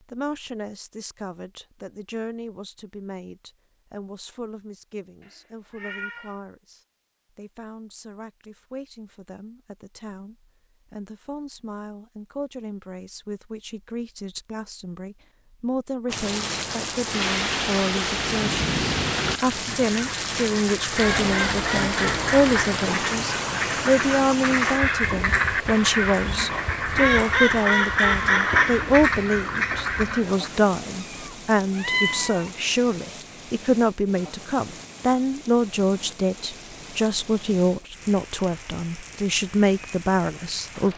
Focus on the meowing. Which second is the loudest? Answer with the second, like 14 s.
32 s.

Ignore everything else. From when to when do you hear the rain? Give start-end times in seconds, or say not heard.
16.1-40.9.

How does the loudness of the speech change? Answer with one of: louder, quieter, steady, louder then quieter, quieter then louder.
louder.